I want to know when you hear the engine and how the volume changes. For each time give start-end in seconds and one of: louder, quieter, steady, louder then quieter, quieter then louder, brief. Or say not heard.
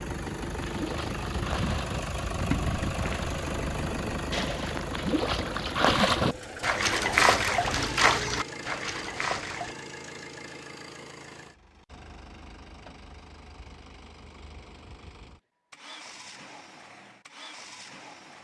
0.0-18.3 quieter.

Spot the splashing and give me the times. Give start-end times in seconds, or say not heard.
0.6-9.8.